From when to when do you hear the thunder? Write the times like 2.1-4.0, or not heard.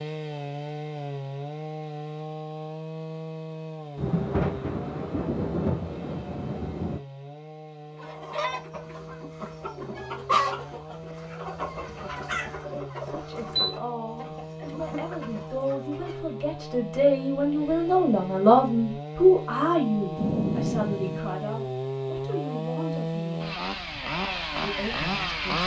4.0-7.0, 20.1-21.2.